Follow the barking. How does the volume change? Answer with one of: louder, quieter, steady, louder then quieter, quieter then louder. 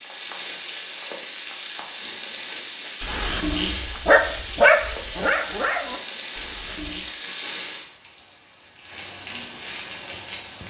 louder then quieter.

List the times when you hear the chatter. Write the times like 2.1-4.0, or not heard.
not heard.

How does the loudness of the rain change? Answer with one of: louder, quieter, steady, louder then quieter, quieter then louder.
steady.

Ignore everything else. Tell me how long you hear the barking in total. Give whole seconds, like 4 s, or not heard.
4 s.